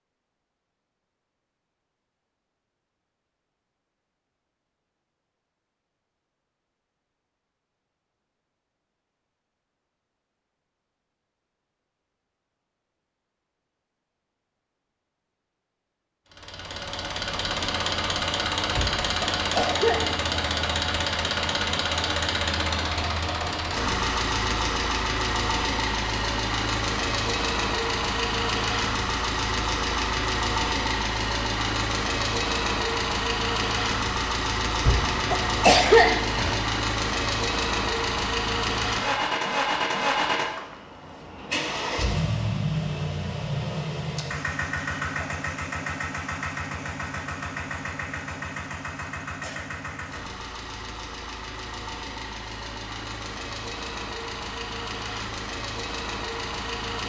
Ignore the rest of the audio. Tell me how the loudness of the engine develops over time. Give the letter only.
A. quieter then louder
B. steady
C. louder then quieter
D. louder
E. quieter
E.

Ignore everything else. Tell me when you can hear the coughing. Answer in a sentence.
You can hear the coughing from 18.8 to 20.5 s and from 34.8 to 36.6 s.